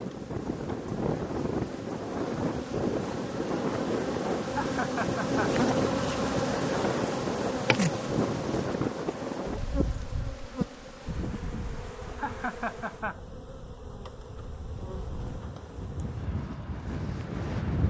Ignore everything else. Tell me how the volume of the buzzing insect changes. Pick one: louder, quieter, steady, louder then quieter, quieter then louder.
louder then quieter.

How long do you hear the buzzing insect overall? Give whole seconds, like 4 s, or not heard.
16 s.